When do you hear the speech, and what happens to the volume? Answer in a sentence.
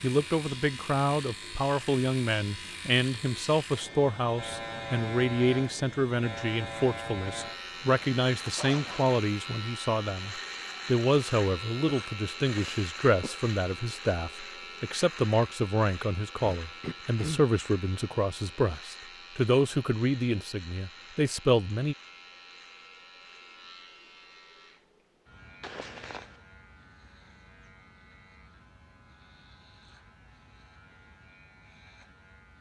The speech can be heard from 0.0 to 21.9 s, at a steady volume.